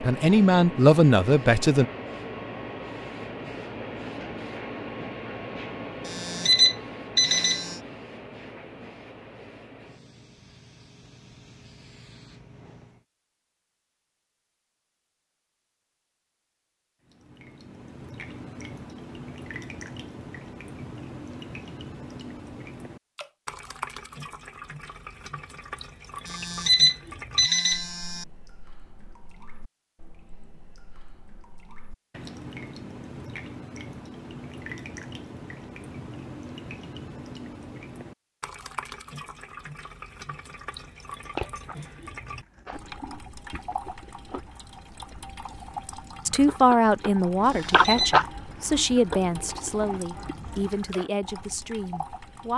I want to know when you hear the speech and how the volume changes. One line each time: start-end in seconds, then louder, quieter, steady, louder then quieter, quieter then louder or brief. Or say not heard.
0.0-1.9 brief
46.2-52.5 quieter.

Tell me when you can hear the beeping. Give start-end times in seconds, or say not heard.
6.0-7.8, 26.2-28.2, 47.5-48.1.